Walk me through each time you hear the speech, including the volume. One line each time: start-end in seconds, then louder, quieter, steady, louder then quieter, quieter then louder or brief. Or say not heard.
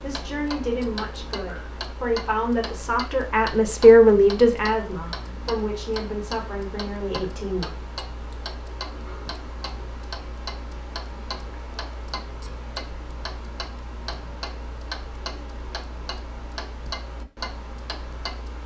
0.0-7.7 louder then quieter.